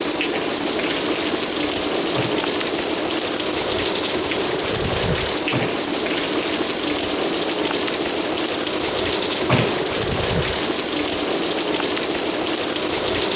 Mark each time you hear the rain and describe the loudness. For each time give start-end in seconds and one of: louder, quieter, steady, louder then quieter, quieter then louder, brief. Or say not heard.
0.0-13.3 steady.